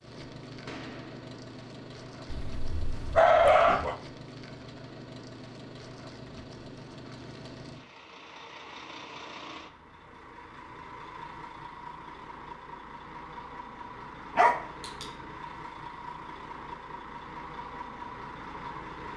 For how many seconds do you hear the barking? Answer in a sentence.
You can hear the barking for 2 seconds altogether.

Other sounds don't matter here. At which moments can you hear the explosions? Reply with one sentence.
The explosions can be heard from 0.7 to 1.2 s.